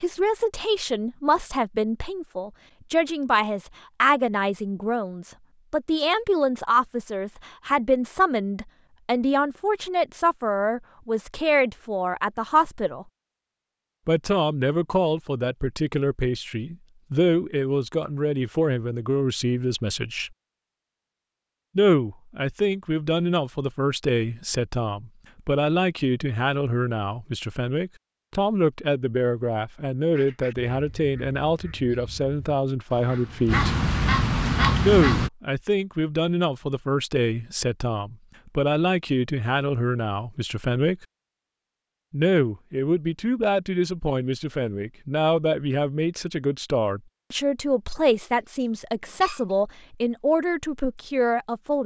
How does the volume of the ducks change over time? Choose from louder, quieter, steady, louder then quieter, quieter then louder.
louder.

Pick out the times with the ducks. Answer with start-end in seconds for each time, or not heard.
30.1-35.3.